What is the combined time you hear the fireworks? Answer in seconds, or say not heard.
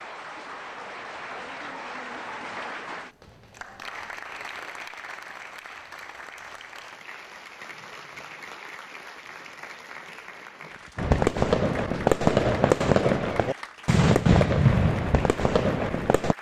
5 s.